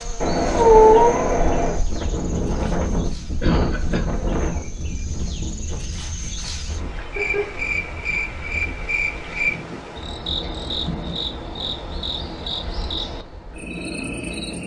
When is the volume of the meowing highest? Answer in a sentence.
The loudest moment of the meowing is at 1 second.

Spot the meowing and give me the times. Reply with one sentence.
The meowing can be heard from 0.2 to 1.8 s, from 7.0 to 7.6 s and from 10.4 to 11.2 s.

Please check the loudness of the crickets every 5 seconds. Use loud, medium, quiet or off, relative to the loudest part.
medium, loud, loud.